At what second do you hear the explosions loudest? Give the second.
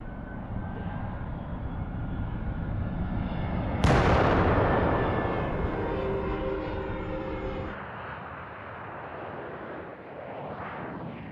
4 s.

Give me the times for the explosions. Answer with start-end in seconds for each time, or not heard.
3.8-6.1.